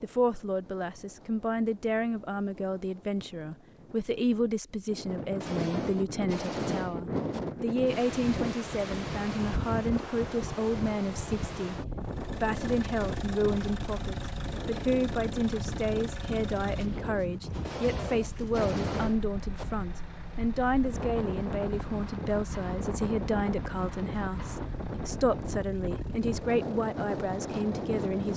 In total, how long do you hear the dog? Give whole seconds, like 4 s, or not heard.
not heard.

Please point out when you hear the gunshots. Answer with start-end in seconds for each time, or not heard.
5.4-7.4, 17.6-19.6.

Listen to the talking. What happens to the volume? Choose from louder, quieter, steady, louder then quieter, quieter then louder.
steady.